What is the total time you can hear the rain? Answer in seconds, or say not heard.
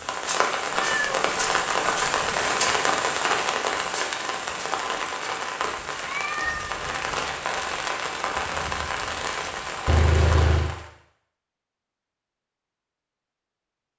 11 s.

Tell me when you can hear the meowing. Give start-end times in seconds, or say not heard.
0.7-2.4, 6.0-6.8, 9.8-10.8.